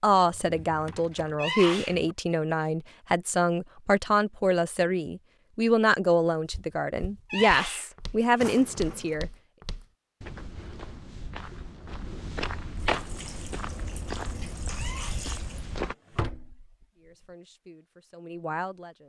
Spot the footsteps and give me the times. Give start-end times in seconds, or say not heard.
6.5-15.9.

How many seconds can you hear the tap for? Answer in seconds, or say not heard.
3 s.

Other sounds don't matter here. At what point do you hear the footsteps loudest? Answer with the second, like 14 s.
13 s.